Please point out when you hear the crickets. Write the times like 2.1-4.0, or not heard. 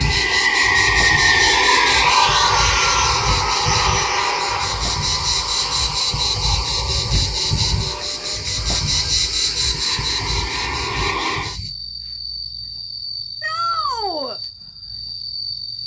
0.0-15.8.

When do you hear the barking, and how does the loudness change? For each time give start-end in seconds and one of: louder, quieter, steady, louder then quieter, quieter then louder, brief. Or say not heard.
not heard.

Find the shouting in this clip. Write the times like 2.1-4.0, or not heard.
13.4-14.4.